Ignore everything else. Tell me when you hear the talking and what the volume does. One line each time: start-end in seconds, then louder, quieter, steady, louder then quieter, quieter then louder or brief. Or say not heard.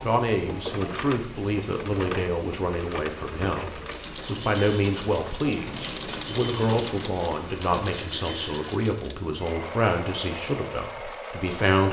0.0-11.8 steady.